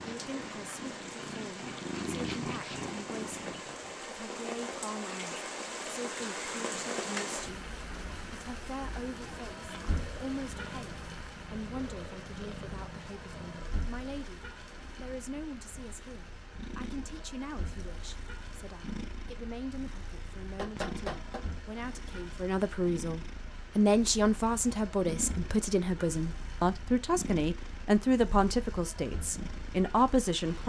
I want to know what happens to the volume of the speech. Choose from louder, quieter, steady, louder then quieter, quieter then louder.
louder.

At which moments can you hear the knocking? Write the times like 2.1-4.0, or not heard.
20.6-21.4.